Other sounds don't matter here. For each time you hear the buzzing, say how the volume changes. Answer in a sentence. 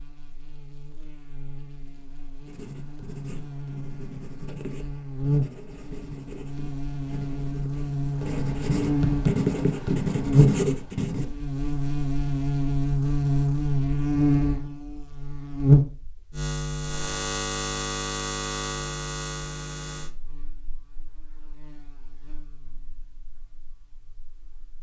You can hear the buzzing from 0.0 to 24.7 s, getting louder then quieter.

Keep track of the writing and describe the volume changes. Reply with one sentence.
The loudness of the writing goes up.